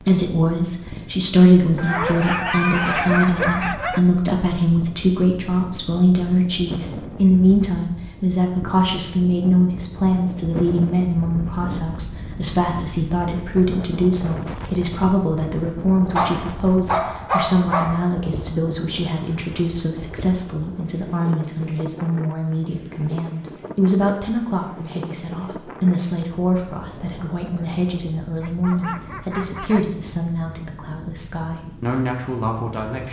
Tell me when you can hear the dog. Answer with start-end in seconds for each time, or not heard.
1.8-4.0, 16.1-18.1, 28.4-29.9.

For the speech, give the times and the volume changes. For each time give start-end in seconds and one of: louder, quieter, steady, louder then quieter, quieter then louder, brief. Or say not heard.
0.0-33.0 quieter.